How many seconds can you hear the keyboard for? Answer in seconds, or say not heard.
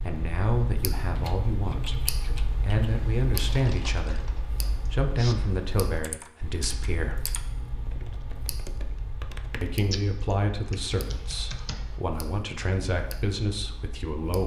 11 s.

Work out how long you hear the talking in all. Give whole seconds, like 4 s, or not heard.
12 s.